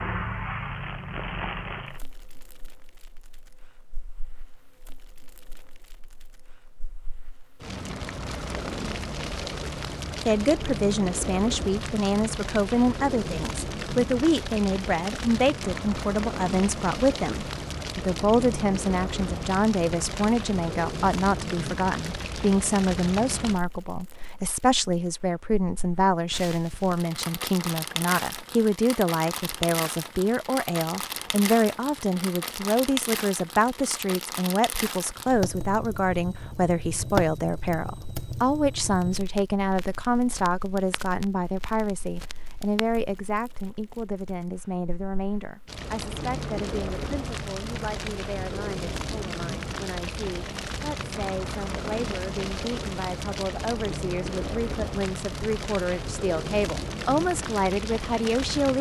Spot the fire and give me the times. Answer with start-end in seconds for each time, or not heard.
0.0-58.7.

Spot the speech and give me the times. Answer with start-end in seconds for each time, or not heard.
10.2-58.7.